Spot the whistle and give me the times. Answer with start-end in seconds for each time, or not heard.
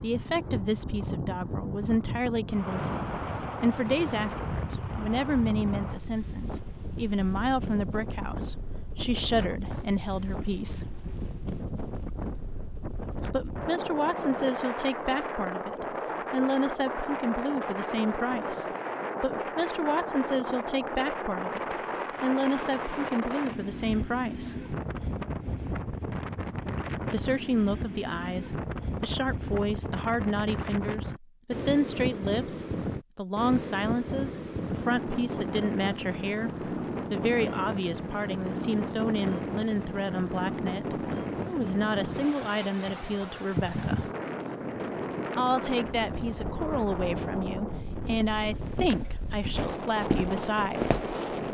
not heard.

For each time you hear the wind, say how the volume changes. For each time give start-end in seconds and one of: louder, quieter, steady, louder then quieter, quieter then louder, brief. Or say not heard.
0.0-51.4 steady.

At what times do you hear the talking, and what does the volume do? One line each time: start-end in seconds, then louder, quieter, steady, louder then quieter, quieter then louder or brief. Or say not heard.
0.0-10.8 steady
13.3-24.6 steady
27.1-44.1 steady
45.4-51.0 steady.